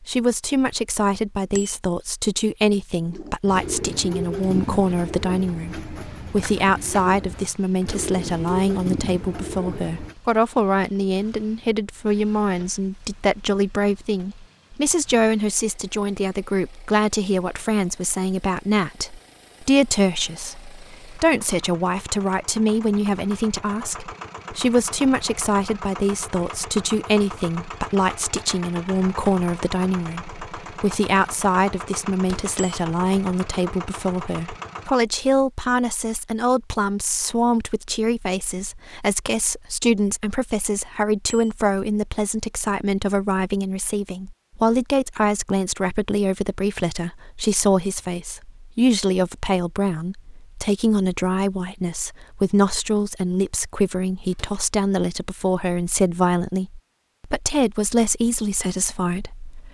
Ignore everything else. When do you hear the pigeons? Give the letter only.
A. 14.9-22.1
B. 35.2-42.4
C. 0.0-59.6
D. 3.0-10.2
D.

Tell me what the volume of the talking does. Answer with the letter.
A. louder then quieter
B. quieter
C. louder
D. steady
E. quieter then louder
D.